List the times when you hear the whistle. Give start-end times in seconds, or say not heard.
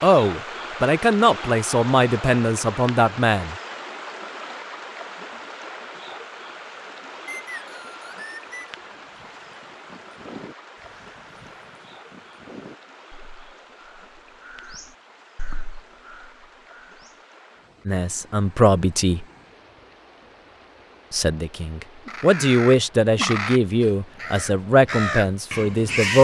7.2-8.8.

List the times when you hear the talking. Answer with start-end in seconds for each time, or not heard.
0.0-3.5, 17.9-19.2, 21.1-26.1.